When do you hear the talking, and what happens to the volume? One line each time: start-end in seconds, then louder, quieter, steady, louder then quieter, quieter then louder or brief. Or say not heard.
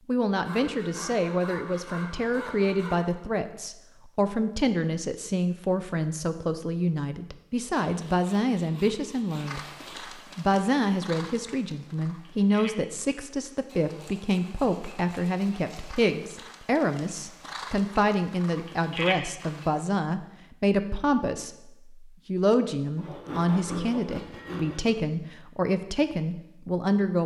0.1-9.6 steady
10.3-27.2 steady.